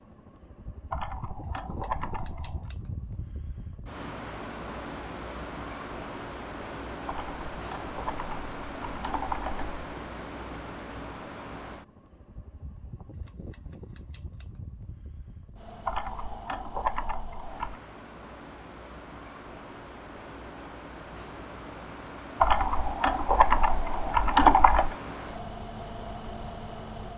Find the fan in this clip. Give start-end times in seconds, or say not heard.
0.0-27.1.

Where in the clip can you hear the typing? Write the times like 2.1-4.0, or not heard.
0.9-2.7, 7.0-9.7, 15.8-17.8, 22.4-24.9.